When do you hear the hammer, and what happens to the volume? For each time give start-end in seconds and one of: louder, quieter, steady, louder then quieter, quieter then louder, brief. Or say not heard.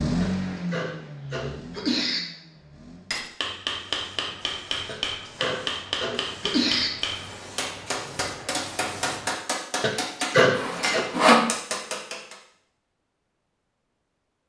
3.1-12.3 steady.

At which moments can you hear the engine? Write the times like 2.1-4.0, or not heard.
0.0-3.1.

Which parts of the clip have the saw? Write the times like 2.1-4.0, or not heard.
10.5-11.5.